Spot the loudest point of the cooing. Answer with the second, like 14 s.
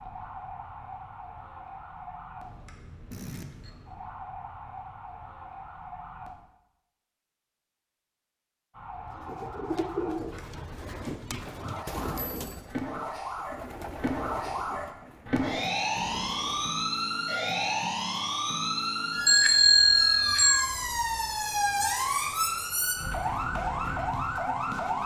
10 s.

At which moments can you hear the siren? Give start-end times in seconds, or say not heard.
0.0-6.3, 8.7-25.0.